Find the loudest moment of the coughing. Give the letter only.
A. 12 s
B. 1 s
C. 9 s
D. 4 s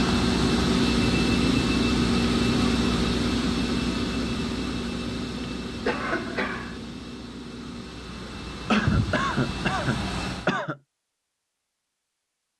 C.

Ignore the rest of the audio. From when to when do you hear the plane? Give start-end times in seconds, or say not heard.
0.0-10.6.